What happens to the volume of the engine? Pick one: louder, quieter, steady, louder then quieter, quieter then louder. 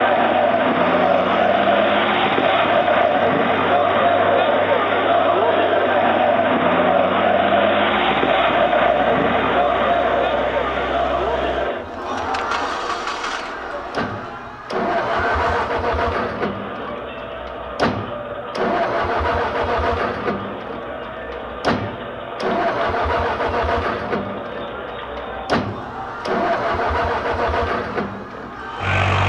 louder.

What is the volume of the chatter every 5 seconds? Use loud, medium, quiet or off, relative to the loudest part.
loud, loud, medium, quiet, quiet, quiet.